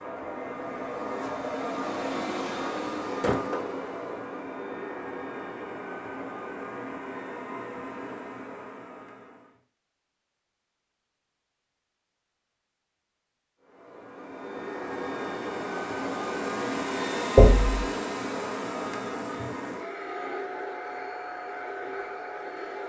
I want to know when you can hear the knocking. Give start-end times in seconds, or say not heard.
17.4-17.8.